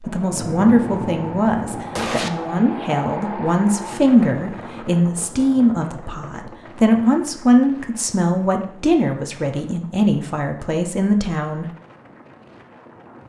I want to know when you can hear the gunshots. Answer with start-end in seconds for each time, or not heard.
0.3-2.3.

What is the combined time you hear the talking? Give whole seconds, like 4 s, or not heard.
12 s.